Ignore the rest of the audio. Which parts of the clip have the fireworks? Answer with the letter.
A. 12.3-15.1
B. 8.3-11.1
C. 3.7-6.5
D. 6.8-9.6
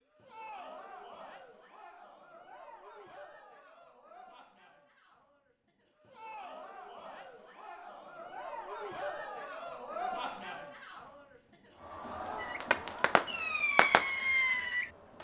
A.